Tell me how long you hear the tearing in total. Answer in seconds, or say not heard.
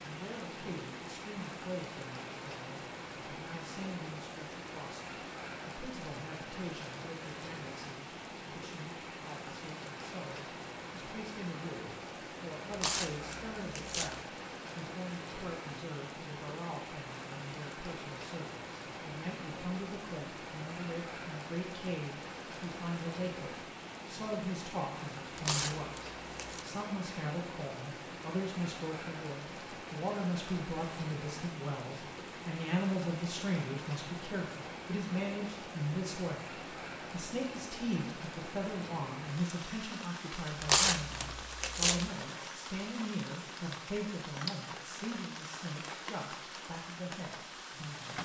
4 s.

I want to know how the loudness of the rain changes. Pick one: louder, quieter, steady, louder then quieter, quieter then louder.
steady.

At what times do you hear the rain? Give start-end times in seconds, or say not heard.
0.0-48.2.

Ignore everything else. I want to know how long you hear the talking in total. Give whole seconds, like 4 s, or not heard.
48 s.